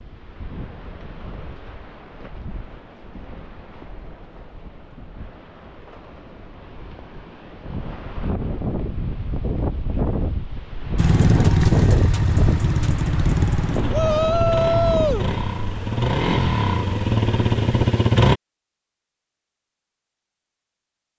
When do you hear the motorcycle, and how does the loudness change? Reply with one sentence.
You can hear the motorcycle from 10.9 to 18.4 s, getting quieter then louder.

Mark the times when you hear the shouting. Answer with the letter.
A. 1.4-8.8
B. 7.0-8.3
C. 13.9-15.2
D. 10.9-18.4
C.